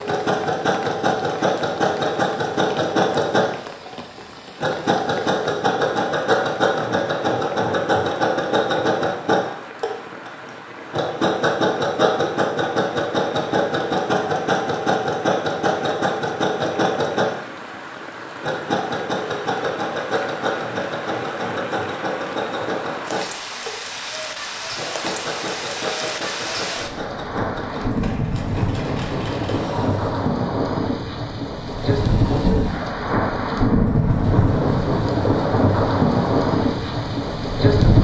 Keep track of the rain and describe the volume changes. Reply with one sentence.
The loudness of the rain goes up.